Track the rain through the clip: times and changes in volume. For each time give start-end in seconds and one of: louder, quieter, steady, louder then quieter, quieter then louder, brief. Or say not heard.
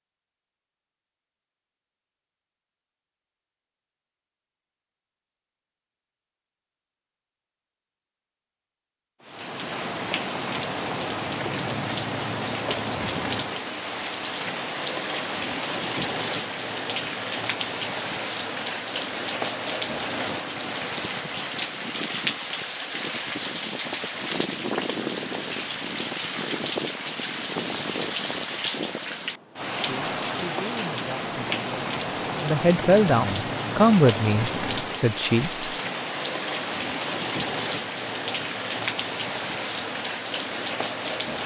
9.2-41.4 steady.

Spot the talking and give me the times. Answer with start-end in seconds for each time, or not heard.
29.8-35.6.